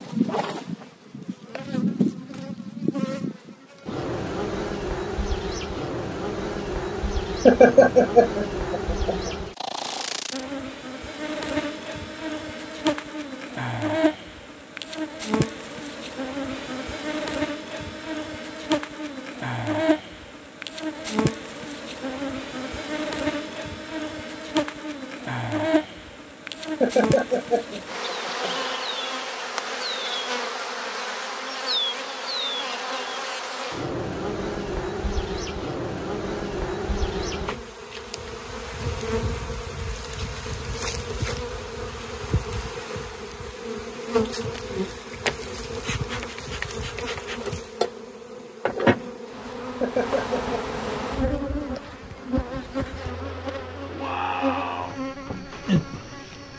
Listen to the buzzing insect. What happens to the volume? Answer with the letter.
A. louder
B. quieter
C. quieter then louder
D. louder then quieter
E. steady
E.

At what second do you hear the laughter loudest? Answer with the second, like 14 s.
8 s.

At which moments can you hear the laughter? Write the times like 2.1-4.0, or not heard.
7.5-9.3, 26.8-28.6, 49.8-50.6.